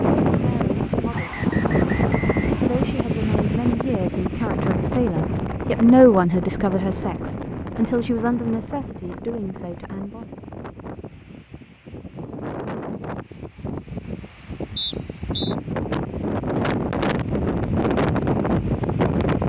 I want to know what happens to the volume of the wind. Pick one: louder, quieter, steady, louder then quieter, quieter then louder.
quieter then louder.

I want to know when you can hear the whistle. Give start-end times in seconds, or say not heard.
1.1-3.0, 14.8-15.6.